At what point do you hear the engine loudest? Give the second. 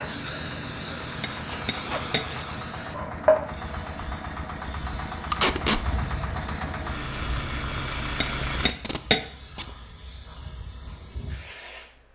8 s.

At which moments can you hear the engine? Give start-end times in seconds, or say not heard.
0.0-8.7.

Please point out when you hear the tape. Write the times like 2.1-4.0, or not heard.
1.4-2.5, 5.3-5.8, 8.3-9.7.